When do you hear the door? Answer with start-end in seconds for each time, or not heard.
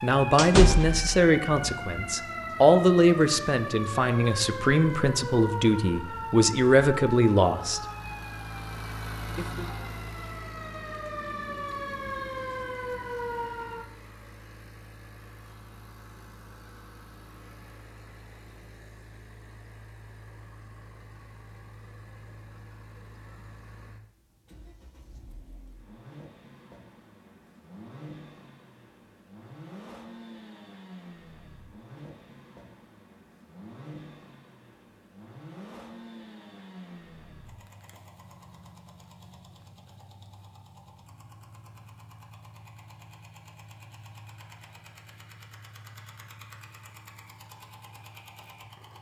0.3-1.1.